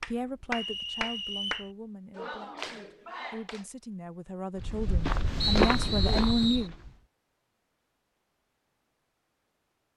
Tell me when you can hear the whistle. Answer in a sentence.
The whistle can be heard from 0.5 to 1.7 s and from 5.4 to 6.7 s.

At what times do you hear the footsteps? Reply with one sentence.
The footsteps can be heard from 4.5 to 7.0 s.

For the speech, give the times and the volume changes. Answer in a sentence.
You can hear the speech from 0.0 to 6.8 s, getting quieter then louder.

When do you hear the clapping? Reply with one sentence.
The clapping can be heard from 0.0 to 3.6 s.